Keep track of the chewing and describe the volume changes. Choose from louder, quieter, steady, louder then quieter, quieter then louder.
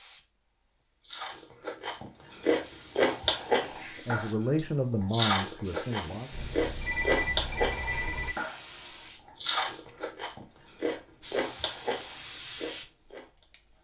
quieter.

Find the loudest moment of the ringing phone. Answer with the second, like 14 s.
7 s.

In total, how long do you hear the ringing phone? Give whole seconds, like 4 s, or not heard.
2 s.